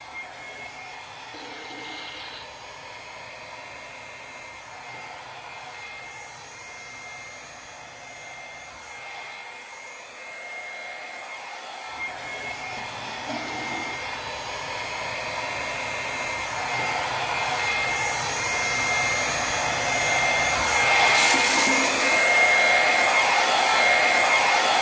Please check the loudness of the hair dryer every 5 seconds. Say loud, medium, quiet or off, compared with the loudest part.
quiet, quiet, quiet, medium, loud.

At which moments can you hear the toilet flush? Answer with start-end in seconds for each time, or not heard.
1.3-2.5, 12.7-14.0, 21.0-22.4.